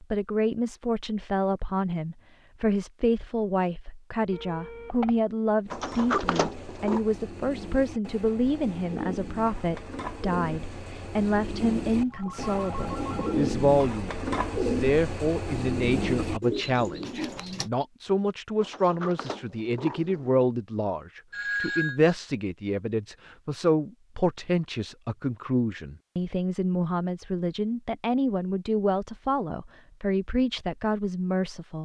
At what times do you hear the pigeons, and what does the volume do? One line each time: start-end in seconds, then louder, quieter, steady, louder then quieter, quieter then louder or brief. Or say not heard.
5.7-17.7 louder.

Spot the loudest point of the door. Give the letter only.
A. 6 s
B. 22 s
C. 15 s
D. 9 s
A.